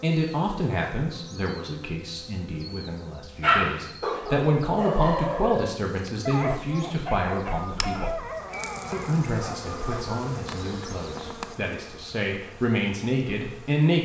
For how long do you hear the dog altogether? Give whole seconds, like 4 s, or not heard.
7 s.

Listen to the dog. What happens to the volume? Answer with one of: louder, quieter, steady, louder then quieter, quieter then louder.
quieter.